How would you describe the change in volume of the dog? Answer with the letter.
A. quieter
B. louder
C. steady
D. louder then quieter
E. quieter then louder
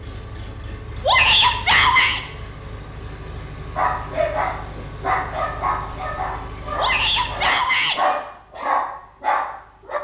E.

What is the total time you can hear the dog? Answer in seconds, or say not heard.
6 s.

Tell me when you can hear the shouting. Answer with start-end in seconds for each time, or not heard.
1.1-2.2, 6.8-8.0.